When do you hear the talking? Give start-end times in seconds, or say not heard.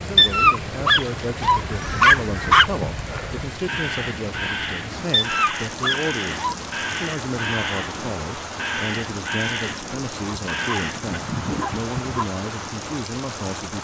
0.0-13.8.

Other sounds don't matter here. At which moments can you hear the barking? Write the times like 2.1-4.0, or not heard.
0.1-2.7, 5.1-6.5, 10.2-12.2.